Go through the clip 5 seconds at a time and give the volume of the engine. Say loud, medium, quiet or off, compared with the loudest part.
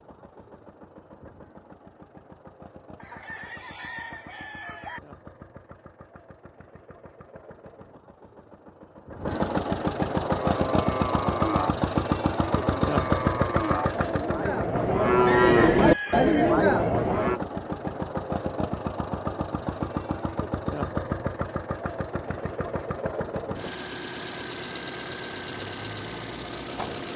quiet, medium, loud, medium, medium, medium.